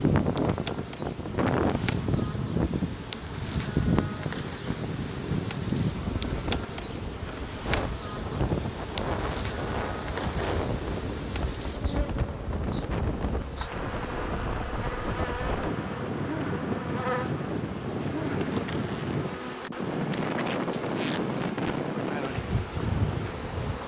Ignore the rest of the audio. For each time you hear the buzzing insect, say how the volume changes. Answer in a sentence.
You can hear the buzzing insect from 0.0 to 23.8 s, at a steady volume.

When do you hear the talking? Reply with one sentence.
You can't hear the talking here.